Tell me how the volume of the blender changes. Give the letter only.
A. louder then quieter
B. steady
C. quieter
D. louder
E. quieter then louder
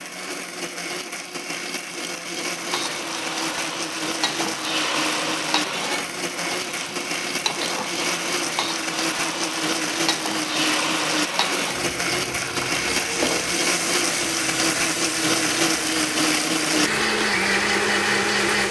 D.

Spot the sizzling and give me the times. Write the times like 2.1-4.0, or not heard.
2.5-18.6.